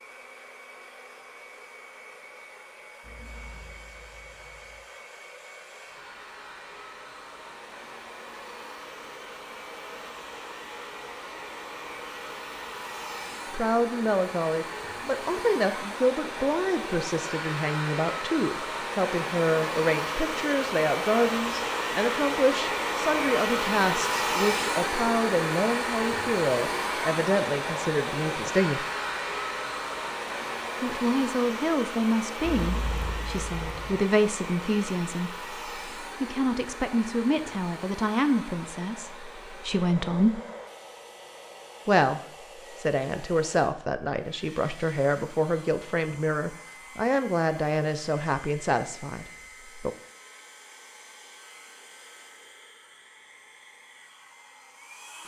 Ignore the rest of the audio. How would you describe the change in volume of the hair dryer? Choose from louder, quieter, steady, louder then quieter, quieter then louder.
louder then quieter.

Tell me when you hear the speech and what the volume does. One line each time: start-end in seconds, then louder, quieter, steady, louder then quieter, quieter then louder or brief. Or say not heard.
13.5-28.9 steady
30.8-40.4 steady
41.9-50.0 steady.